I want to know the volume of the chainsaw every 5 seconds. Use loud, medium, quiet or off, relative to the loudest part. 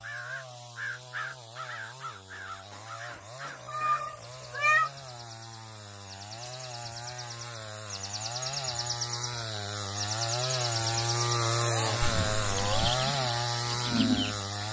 quiet, medium, loud.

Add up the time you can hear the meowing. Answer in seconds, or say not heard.
2 s.